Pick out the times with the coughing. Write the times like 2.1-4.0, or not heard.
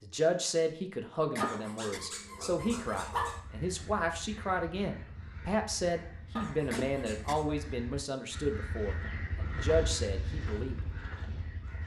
1.3-2.0, 6.7-7.4.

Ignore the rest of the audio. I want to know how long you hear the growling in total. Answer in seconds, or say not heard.
3 s.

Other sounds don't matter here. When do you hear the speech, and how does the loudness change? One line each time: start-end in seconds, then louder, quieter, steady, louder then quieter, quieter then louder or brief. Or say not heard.
0.0-10.8 steady.